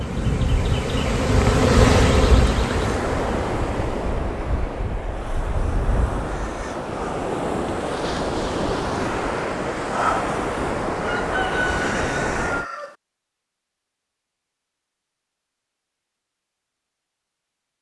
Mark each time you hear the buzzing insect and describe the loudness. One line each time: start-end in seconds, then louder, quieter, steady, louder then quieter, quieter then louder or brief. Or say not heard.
0.0-4.2 louder then quieter.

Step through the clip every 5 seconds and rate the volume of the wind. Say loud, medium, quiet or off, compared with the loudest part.
loud, loud, loud, off.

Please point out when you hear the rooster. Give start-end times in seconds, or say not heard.
11.0-12.9.